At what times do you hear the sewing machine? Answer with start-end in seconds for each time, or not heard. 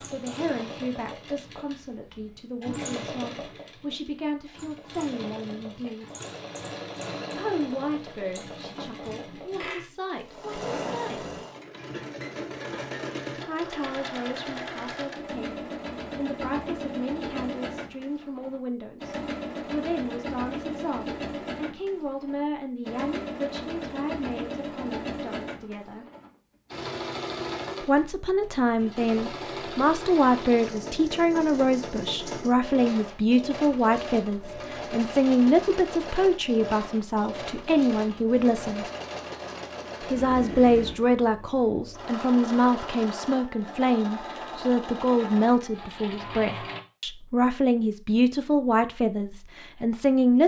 0.0-46.8.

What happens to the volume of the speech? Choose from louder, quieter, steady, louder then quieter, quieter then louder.
louder.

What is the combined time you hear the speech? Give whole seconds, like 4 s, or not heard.
44 s.